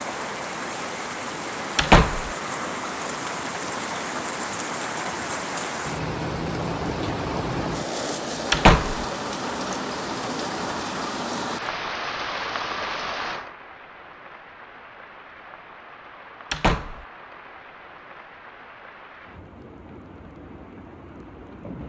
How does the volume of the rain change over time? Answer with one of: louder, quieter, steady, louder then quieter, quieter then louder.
quieter.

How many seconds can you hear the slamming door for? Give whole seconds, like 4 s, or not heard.
2 s.